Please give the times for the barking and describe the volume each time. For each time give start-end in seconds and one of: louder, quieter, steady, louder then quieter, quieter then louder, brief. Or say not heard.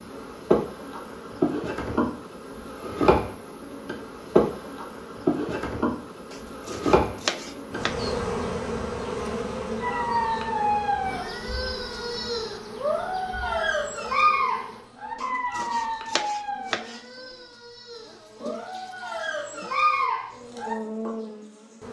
9.8-21.1 quieter then louder.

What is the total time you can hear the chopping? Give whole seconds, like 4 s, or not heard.
4 s.